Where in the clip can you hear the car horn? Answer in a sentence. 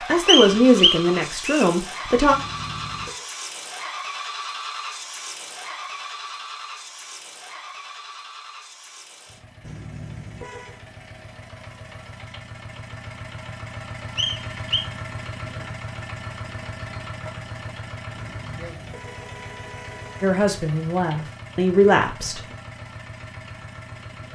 You can hear the car horn from 2.3 to 3.3 s, from 9.6 to 10.8 s and from 18.1 to 20.4 s.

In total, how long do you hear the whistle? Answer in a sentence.
You can hear the whistle for 2 seconds altogether.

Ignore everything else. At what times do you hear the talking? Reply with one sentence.
The talking can be heard from 0.1 to 2.4 s and from 20.2 to 22.4 s.